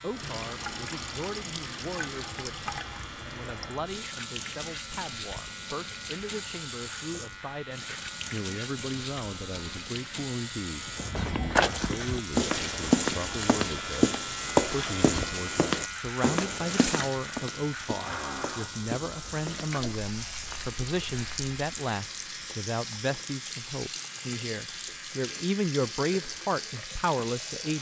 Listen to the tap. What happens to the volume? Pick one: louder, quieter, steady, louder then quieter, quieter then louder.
steady.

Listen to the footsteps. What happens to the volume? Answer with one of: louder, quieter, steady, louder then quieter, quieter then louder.
quieter.